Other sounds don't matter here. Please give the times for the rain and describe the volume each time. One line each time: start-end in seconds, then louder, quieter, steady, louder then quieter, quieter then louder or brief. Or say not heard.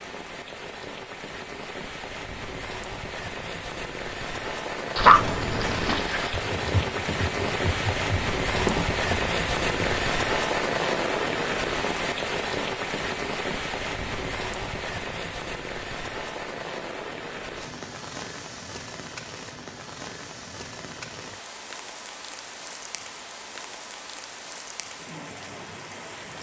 0.0-26.3 louder then quieter.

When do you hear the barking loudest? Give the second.
5 s.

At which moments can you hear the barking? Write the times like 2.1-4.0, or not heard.
5.0-6.3.